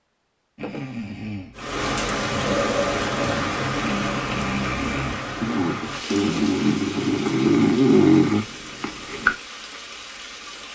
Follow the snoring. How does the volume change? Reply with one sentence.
The loudness of the snoring goes up.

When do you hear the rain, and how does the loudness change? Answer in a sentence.
You can hear the rain from 1.6 to 10.7 s, getting quieter.